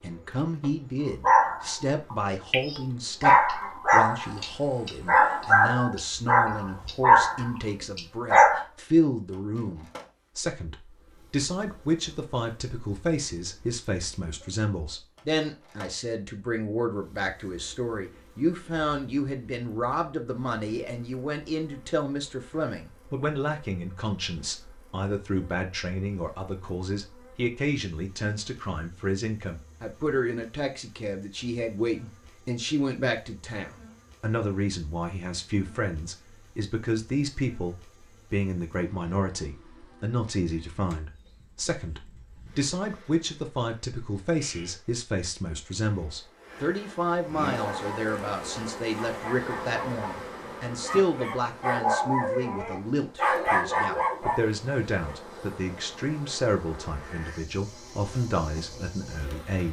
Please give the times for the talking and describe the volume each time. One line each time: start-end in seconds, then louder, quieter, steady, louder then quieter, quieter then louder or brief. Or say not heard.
0.0-59.6 steady.